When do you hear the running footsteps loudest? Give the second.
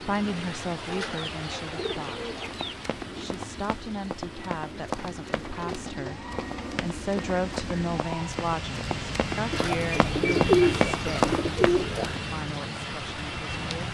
11 s.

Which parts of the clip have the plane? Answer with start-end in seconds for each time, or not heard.
0.0-13.8.